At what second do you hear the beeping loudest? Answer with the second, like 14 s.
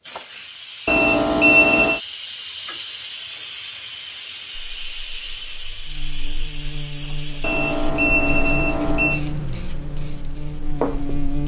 2 s.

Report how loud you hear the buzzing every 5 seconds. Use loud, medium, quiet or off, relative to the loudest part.
off, loud, loud.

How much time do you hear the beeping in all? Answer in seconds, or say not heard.
3 s.